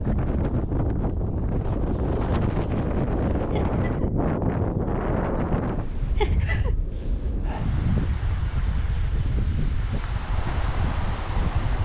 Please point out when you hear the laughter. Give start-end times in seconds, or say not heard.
3.5-4.1, 6.2-6.7.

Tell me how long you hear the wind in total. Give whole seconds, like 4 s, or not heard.
12 s.